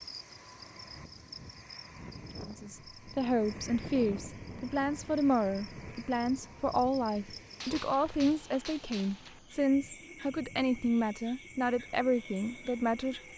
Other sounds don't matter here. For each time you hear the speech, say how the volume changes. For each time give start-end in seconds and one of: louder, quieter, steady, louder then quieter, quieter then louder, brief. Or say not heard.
2.5-13.2 steady.